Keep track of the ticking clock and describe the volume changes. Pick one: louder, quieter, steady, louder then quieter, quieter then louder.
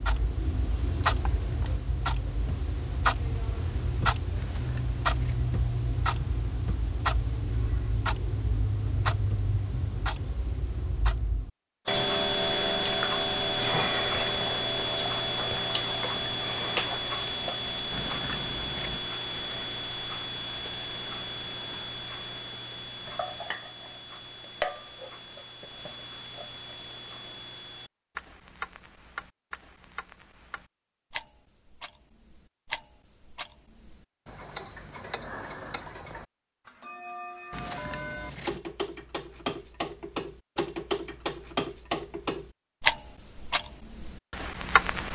quieter then louder.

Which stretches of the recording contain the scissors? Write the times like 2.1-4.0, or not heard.
4.3-5.5, 17.9-19.0, 37.5-38.6.